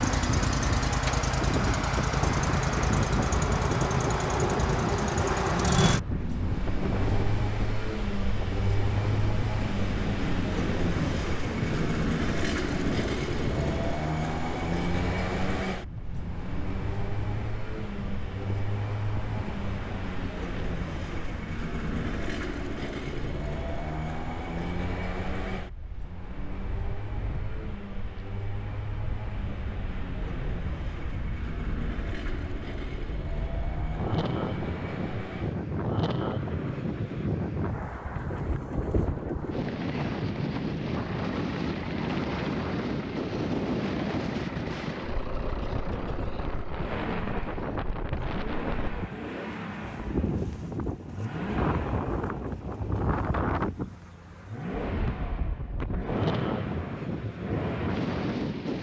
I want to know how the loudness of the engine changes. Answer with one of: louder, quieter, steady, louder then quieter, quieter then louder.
quieter.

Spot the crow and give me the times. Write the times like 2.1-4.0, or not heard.
not heard.